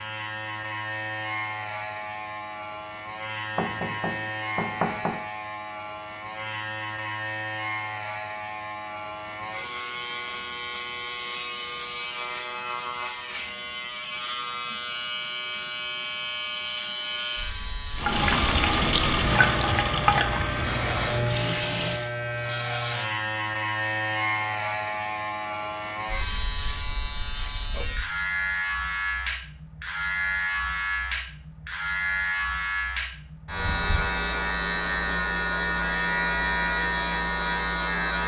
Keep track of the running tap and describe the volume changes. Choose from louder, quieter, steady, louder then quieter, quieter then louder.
quieter.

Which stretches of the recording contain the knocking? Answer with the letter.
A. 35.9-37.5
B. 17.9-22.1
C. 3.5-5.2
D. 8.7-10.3
C.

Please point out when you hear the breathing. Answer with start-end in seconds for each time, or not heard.
not heard.